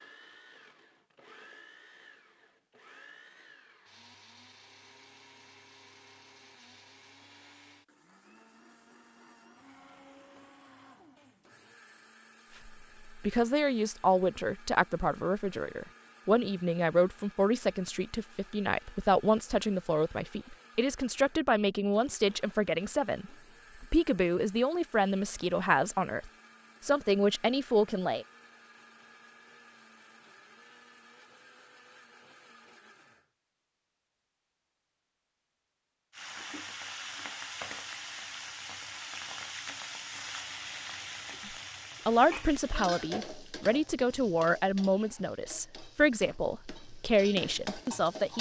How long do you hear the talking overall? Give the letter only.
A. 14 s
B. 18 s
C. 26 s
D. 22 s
D.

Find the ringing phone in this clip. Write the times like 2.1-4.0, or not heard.
not heard.